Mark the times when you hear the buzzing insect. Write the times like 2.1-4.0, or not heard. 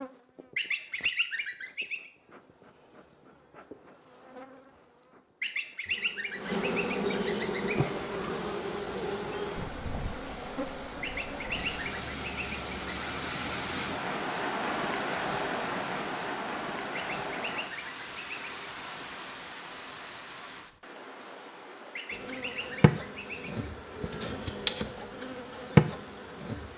0.0-11.8, 22.1-26.7.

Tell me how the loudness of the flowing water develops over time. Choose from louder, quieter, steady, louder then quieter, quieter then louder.
louder then quieter.